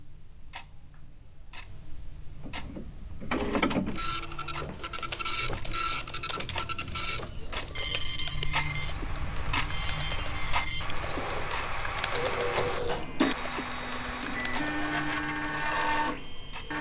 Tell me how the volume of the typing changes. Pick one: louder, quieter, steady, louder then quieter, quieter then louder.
louder.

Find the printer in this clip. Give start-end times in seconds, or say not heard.
2.4-16.7.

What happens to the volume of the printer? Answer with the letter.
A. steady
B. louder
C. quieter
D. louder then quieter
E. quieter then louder
E.